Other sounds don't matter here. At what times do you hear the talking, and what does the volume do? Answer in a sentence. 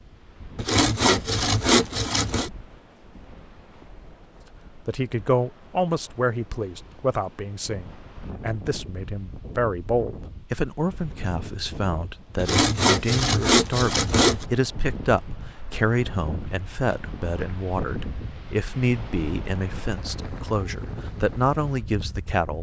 You can hear the talking from 4.8 to 22.5 s, at a steady volume.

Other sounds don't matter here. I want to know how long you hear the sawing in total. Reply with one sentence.
You can hear the sawing for 4 seconds altogether.